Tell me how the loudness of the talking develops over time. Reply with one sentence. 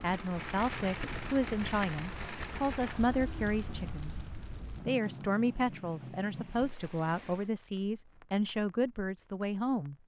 The loudness of the talking stays about the same.